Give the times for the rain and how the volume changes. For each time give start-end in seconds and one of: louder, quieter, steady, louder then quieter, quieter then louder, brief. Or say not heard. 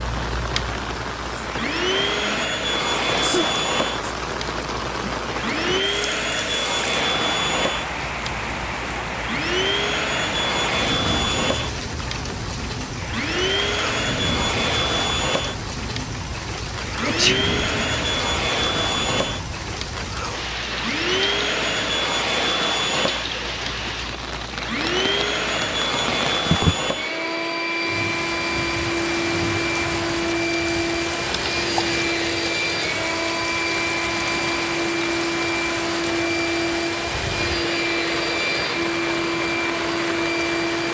0.0-40.9 steady.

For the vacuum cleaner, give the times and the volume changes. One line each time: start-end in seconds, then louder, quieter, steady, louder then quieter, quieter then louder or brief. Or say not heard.
0.0-40.9 steady.